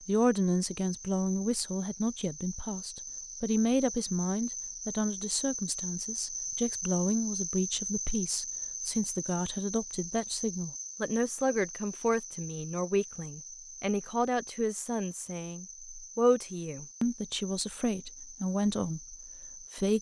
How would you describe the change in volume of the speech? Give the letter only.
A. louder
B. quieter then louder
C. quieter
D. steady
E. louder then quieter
D.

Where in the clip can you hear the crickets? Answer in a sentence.
The crickets can be heard from 0.0 to 19.9 s.